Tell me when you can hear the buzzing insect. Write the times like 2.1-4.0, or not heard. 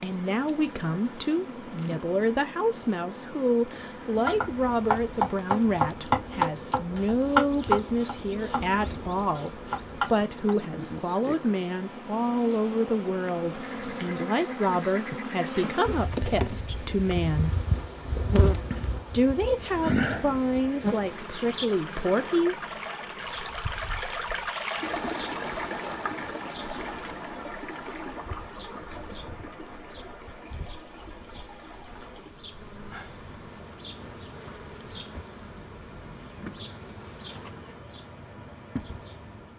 0.0-39.2.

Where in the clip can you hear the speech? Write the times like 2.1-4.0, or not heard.
0.0-17.5, 19.1-22.6.